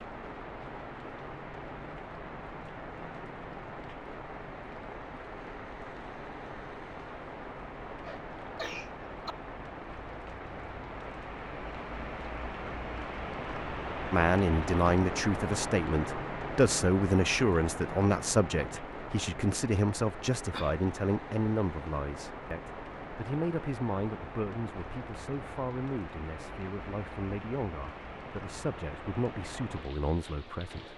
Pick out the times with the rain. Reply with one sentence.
You can hear the rain from 0.0 to 30.9 s.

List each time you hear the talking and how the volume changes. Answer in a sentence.
You can hear the talking from 14.1 to 30.9 s, getting quieter.